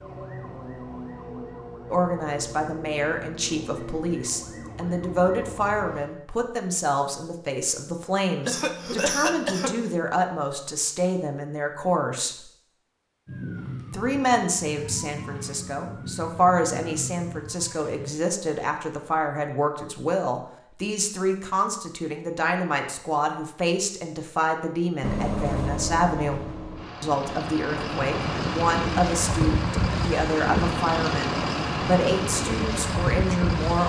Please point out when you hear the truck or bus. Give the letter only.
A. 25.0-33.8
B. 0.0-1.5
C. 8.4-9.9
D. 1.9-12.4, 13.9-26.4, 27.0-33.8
A.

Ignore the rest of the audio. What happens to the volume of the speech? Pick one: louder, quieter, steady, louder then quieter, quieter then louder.
steady.